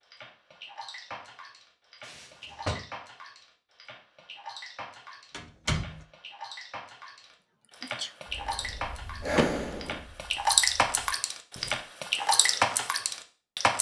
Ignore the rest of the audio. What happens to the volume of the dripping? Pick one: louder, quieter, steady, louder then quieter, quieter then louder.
louder.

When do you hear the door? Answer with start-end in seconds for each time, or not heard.
2.0-2.9, 5.3-6.0, 9.3-10.0.